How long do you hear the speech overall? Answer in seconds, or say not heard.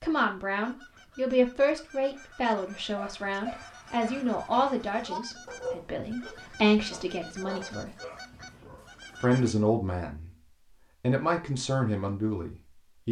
11 s.